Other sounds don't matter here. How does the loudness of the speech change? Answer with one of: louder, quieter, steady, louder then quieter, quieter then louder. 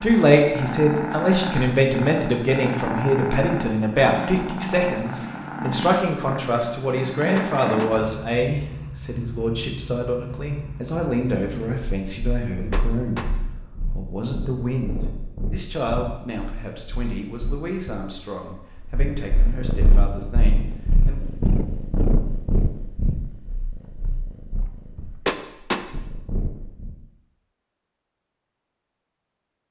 quieter.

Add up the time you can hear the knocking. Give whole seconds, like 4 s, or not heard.
2 s.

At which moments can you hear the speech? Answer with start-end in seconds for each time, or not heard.
0.0-13.3, 13.9-21.2.